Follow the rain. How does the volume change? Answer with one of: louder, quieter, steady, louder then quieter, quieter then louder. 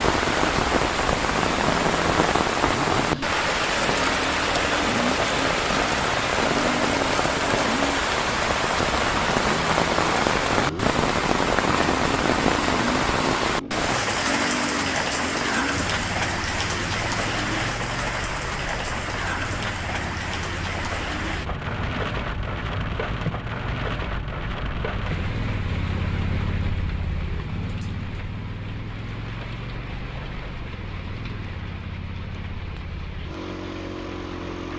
quieter.